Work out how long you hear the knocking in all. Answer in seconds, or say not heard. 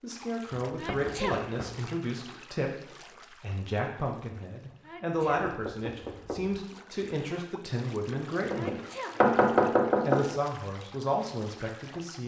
4 s.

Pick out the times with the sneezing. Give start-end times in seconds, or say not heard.
0.8-1.9, 4.8-6.0, 8.5-9.7.